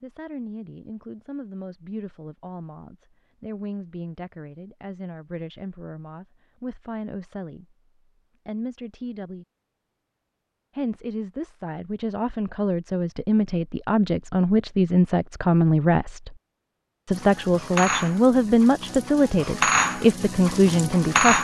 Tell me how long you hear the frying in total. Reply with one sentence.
The frying can be heard for 4 seconds in total.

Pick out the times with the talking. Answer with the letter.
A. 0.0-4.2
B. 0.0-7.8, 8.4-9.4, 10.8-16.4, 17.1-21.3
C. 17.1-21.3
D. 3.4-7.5
B.